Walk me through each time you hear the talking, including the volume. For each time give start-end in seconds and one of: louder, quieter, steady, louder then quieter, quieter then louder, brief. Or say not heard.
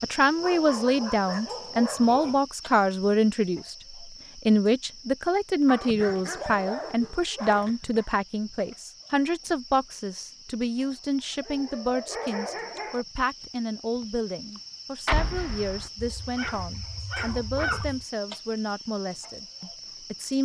0.0-20.4 quieter.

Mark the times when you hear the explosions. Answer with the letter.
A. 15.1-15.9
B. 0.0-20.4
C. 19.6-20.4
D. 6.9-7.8
A.